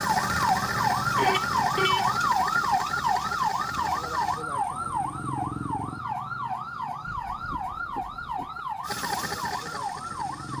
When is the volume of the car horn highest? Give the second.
2 s.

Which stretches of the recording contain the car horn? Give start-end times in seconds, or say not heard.
1.1-2.1, 7.0-8.7.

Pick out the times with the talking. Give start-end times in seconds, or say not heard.
not heard.